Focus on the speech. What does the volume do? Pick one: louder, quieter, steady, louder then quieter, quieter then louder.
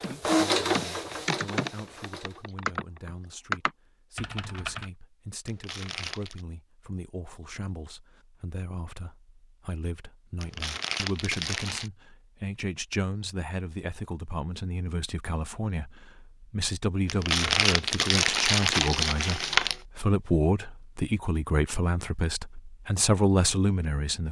louder.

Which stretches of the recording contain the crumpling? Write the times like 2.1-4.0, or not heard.
5.5-6.5, 10.4-11.9, 17.1-19.8.